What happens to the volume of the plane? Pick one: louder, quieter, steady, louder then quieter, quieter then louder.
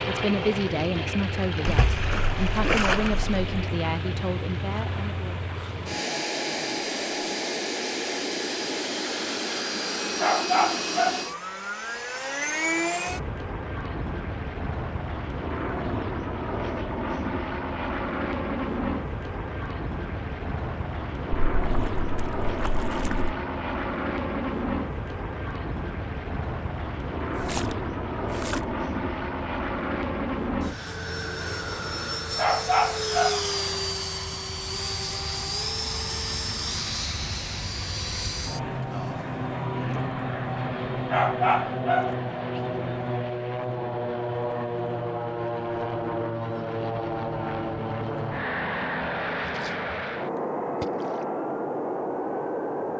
steady.